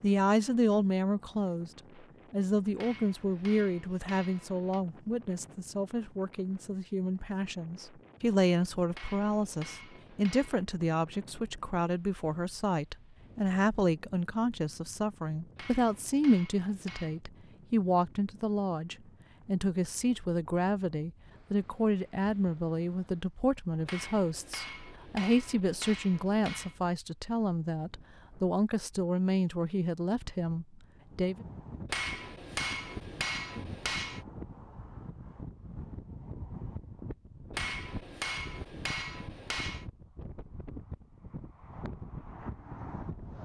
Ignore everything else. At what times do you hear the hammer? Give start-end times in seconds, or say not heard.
2.8-4.8, 8.9-10.6, 15.6-17.2, 23.9-26.8, 31.9-34.2, 37.5-39.9.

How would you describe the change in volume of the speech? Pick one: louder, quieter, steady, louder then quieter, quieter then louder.
steady.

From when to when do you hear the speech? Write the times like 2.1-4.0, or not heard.
0.0-31.4.